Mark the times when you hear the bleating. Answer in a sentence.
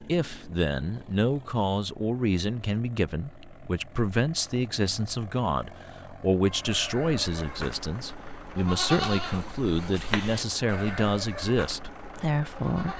The bleating can be heard from 6.4 to 12.9 s.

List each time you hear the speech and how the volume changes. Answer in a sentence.
You can hear the speech from 0.0 to 12.9 s, at a steady volume.